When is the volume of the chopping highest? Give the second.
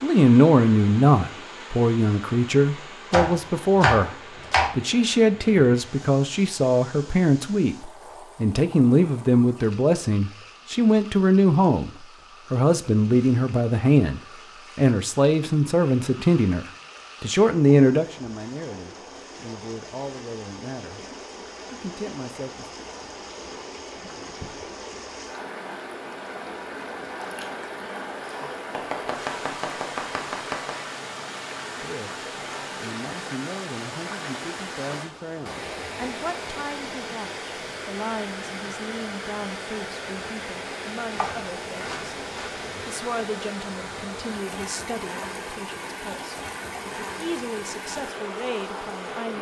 4 s.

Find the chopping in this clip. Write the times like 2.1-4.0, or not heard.
3.1-4.7, 28.7-30.9, 41.0-42.9.